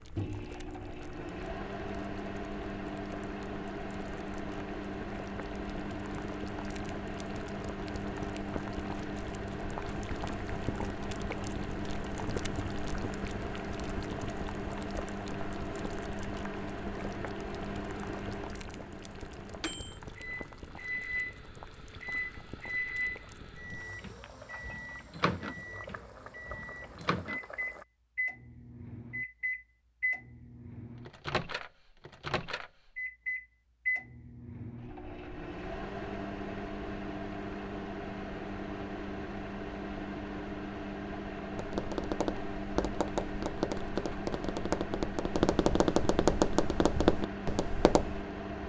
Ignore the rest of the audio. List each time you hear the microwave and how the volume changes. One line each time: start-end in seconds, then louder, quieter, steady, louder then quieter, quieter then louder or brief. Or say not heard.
0.0-48.6 steady.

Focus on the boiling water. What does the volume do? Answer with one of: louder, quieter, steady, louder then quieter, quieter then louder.
louder then quieter.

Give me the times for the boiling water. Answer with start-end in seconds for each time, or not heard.
0.0-27.9.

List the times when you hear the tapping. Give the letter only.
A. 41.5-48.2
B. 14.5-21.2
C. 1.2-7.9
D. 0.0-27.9
A.